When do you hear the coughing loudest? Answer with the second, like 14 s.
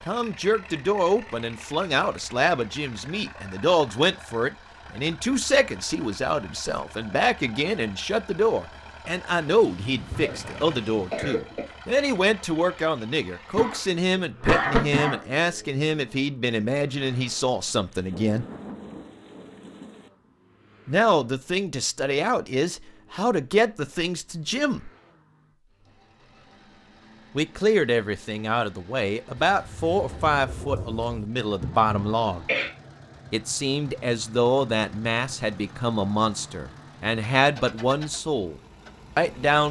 15 s.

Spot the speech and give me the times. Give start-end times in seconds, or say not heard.
0.1-18.4, 20.9-24.9, 27.4-32.5, 33.3-38.5, 39.1-39.6.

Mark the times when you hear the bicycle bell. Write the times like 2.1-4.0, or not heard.
not heard.